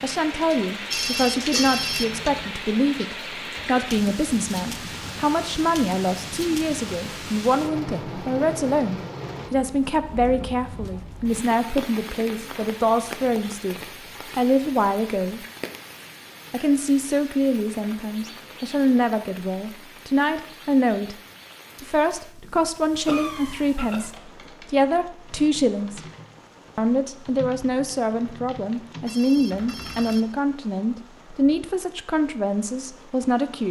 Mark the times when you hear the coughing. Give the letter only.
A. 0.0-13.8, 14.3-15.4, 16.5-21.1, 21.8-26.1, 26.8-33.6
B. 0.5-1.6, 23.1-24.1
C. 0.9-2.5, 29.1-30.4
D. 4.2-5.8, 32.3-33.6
B.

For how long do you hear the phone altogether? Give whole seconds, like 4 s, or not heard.
3 s.